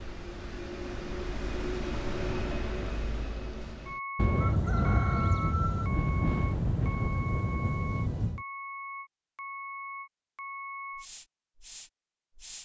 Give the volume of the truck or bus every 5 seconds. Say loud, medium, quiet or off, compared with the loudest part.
loud, loud, medium.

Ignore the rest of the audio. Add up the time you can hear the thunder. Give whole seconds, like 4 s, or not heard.
4 s.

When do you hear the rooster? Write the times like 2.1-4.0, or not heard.
4.3-5.9.